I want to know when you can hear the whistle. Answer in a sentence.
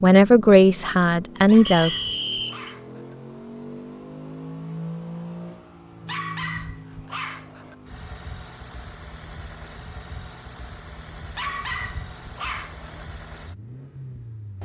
You can hear the whistle from 1.6 to 2.7 s.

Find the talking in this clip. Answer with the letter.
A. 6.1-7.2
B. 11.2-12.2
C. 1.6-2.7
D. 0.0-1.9
D.